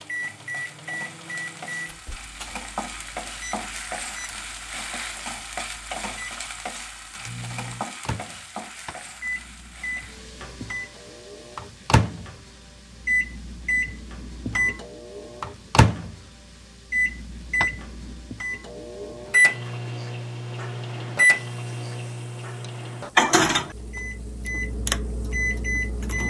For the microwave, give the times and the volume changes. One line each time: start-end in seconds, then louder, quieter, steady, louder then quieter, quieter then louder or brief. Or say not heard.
0.0-26.2 louder.